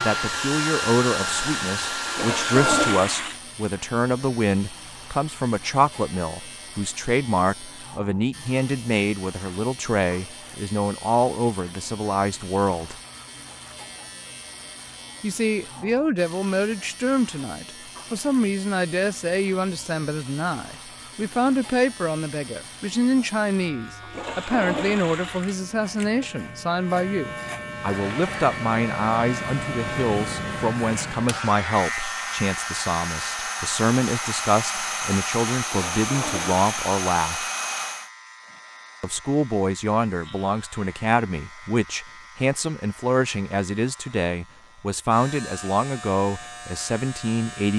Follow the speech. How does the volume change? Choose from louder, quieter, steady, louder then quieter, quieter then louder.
steady.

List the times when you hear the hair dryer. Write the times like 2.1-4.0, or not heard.
0.0-3.1, 27.8-38.1.